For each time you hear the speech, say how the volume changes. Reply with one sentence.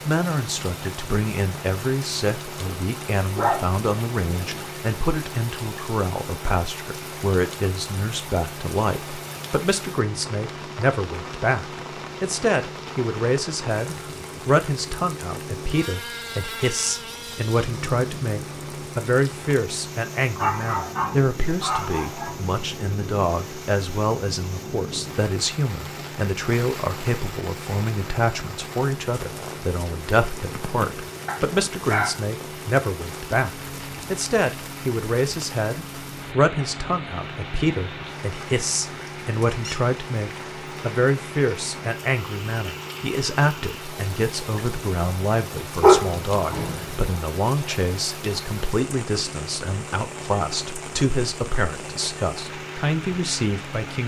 You can hear the speech from 0.1 to 54.0 s, at a steady volume.